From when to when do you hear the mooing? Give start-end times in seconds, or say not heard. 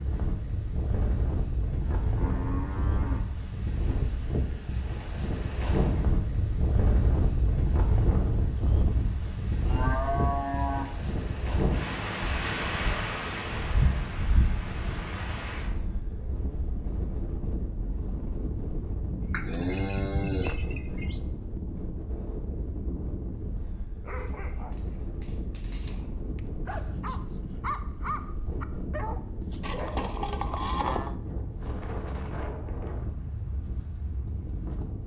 1.9-3.4, 9.2-10.9, 19.2-21.2, 29.6-31.1.